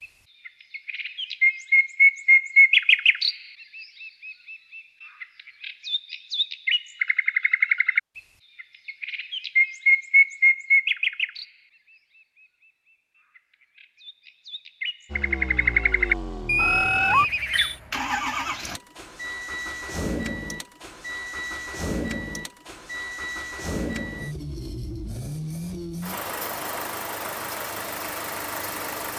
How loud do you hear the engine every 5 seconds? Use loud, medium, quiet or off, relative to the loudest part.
off, off, off, loud, loud, loud.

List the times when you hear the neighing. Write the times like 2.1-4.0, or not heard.
16.4-17.7.